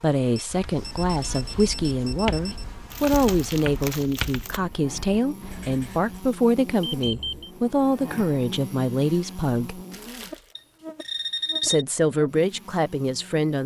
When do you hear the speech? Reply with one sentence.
You can hear the speech from 0.0 to 9.8 s and from 11.6 to 13.6 s.